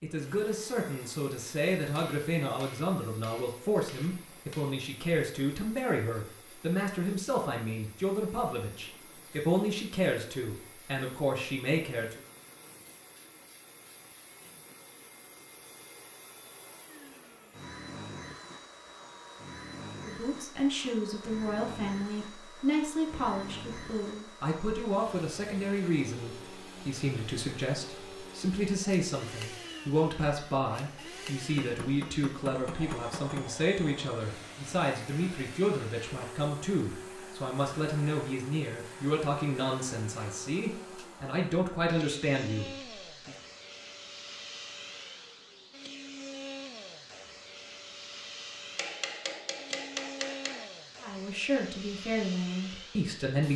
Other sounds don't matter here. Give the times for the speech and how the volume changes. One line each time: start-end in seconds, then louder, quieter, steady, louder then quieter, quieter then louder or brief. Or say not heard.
0.0-12.2 steady
20.1-43.4 steady
51.0-53.5 brief.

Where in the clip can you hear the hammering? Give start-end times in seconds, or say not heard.
1.9-4.8, 31.6-33.5, 48.8-50.6.